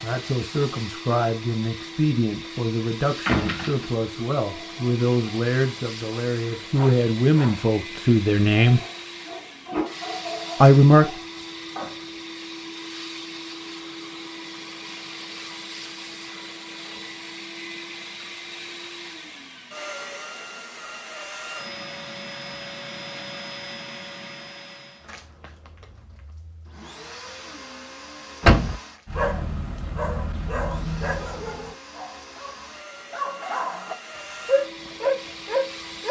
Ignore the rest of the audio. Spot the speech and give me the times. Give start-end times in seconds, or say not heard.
0.0-8.8, 10.6-11.1.